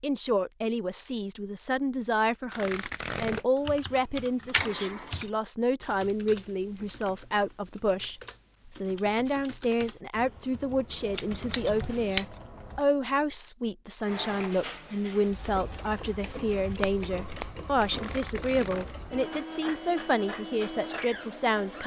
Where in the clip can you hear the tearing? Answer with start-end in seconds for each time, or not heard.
2.5-3.5, 17.9-18.9.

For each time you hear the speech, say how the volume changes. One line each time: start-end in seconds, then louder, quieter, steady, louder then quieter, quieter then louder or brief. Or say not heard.
0.0-21.8 steady.